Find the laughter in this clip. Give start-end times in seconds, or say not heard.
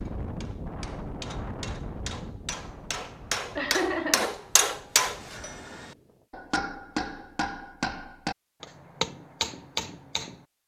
3.5-4.3.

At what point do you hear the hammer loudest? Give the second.
5 s.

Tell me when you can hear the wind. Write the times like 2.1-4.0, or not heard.
0.0-6.2.